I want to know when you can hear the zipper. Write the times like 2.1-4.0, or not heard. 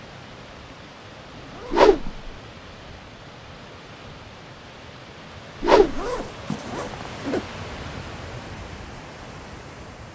1.3-2.2, 5.8-7.5.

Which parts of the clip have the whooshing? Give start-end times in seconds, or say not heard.
1.7-2.2, 5.6-6.1.